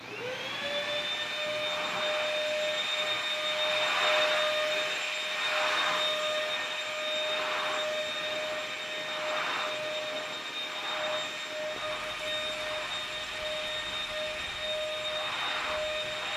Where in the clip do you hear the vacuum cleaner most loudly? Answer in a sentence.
The volume of the vacuum cleaner peaks at 4 seconds.